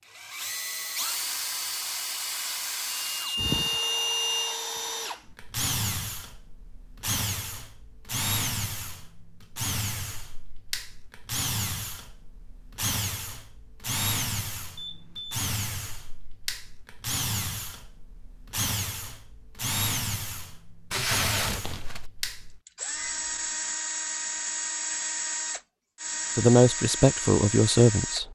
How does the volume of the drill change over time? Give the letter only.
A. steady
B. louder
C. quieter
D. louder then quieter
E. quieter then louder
A.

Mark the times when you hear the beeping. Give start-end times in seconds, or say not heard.
2.9-4.5, 14.8-15.4, 22.9-23.6.